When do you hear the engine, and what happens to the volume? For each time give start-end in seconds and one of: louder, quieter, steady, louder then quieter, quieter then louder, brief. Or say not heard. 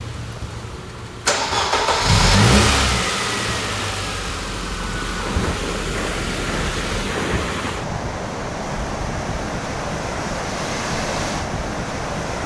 0.0-7.0 louder then quieter.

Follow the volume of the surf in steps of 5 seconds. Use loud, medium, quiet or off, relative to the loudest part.
medium, loud, loud.